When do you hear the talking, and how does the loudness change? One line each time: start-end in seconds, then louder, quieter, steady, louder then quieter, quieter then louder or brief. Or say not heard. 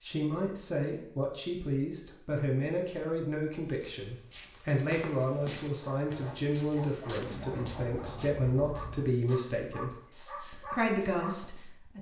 0.0-11.9 steady.